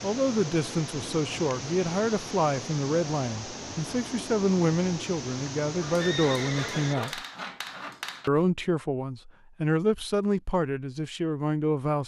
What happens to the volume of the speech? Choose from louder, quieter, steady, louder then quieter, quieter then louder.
steady.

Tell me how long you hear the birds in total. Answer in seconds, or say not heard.
not heard.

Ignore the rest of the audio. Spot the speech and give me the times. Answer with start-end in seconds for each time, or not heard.
0.0-7.2, 8.2-12.0.